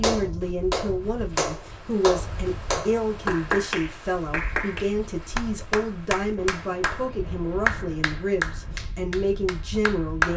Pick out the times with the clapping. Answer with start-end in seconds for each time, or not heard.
0.0-10.3.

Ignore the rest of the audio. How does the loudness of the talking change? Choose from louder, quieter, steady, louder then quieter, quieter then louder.
steady.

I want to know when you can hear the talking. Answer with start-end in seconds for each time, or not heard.
0.0-10.3.